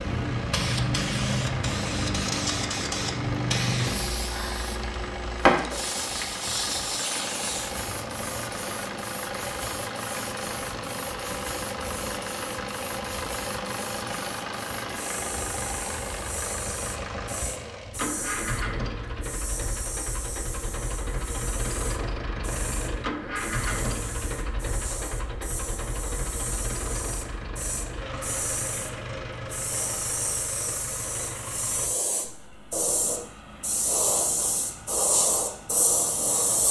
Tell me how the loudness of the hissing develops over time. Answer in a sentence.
The loudness of the hissing goes down, then up.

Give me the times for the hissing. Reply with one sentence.
The hissing can be heard from 0.0 to 36.6 s.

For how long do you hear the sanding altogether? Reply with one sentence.
The sanding can't be heard in this clip.